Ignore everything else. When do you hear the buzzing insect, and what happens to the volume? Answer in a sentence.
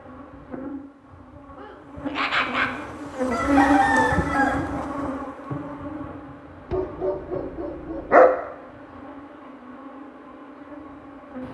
You can hear the buzzing insect from 0.0 to 11.4 s, getting louder then quieter.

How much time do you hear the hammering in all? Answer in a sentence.
The hammering can't be heard in this clip.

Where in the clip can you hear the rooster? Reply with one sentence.
You can hear the rooster from 3.3 to 4.8 s.